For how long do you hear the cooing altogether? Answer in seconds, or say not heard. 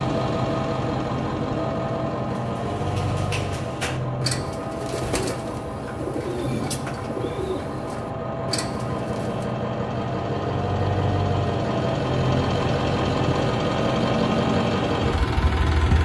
7 s.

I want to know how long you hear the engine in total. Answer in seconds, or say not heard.
16 s.